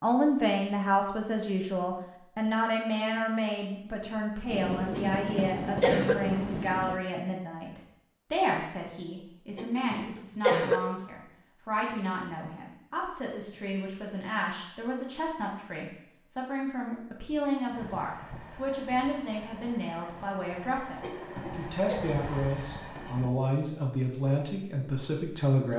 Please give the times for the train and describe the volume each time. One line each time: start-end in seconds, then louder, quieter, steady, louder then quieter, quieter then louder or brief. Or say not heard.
4.5-7.0 brief
17.6-23.3 louder.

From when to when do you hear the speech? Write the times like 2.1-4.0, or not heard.
0.0-25.7.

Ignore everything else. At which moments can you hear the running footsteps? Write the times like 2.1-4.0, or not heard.
not heard.